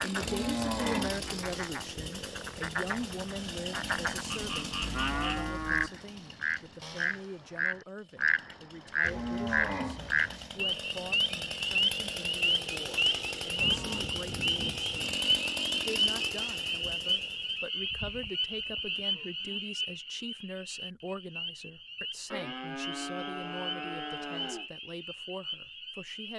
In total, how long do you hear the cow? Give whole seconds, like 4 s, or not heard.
10 s.